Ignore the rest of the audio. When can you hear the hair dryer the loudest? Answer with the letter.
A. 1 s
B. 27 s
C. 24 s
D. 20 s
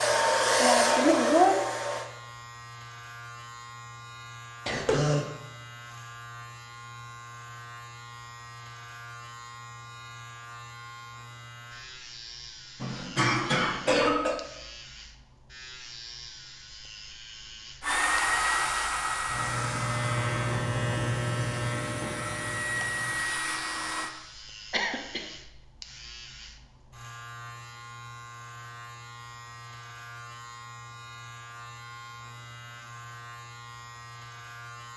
A.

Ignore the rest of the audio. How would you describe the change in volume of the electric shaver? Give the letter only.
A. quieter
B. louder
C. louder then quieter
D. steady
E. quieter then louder
C.